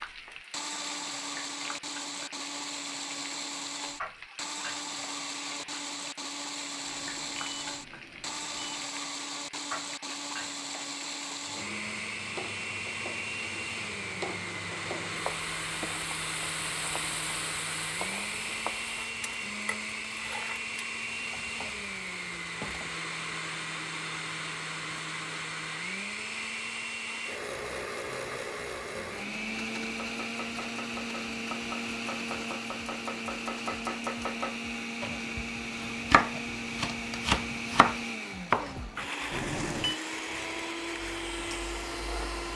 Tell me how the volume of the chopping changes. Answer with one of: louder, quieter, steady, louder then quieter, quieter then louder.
louder.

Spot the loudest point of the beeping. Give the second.
40 s.